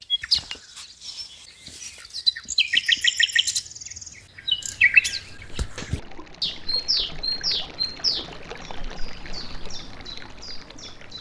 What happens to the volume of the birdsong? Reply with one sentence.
The volume of the birdsong goes up, then down.